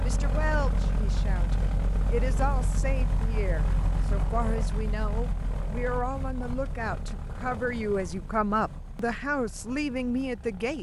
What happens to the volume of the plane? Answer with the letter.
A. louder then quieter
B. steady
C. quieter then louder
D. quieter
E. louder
D.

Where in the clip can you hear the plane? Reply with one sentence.
The plane can be heard from 0.0 to 10.7 s.